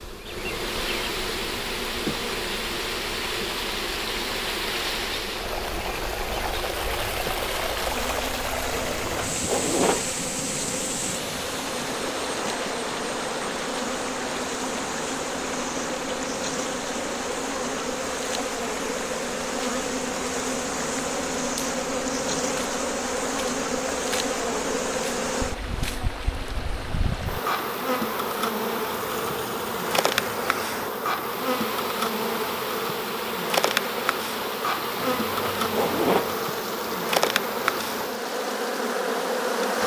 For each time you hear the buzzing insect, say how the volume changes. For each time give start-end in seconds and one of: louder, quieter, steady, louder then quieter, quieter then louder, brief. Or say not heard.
0.0-39.8 louder.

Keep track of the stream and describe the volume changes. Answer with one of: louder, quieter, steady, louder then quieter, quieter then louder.
quieter.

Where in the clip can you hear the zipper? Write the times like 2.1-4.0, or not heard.
8.7-10.1, 35.0-36.4.